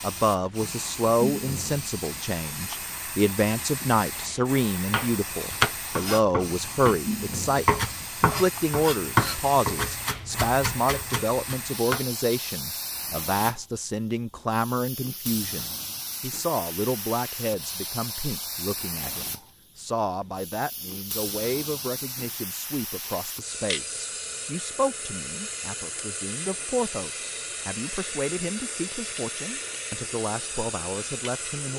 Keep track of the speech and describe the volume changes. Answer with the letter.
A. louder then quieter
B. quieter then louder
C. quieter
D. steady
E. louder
C.